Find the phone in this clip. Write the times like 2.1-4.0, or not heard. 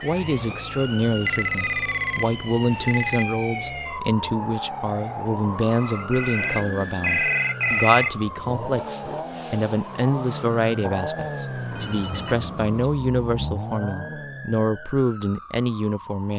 1.2-3.2, 5.7-8.2, 11.7-12.9.